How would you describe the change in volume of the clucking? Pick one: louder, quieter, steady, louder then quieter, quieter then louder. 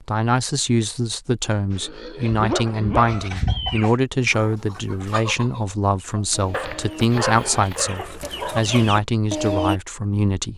quieter then louder.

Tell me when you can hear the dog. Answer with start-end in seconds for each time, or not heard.
1.7-3.3, 6.5-8.6.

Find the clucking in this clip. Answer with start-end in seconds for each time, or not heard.
2.3-9.8.